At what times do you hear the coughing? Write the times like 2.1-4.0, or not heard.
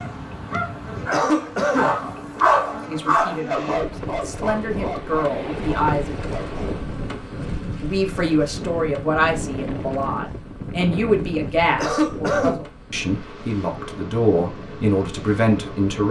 1.0-1.9, 11.7-12.7.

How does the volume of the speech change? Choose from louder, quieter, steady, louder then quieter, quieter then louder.
louder.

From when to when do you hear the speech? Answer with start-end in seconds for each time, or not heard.
2.9-6.2, 7.8-16.0.